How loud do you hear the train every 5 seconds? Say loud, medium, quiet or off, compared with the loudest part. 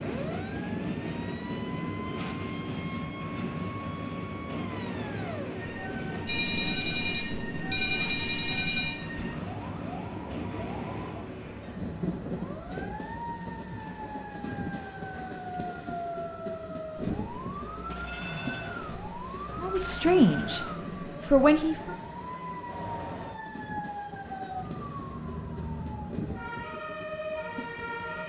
loud, loud, loud, medium, medium, medium.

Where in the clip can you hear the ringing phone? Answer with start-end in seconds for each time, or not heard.
6.2-9.0, 18.1-18.7.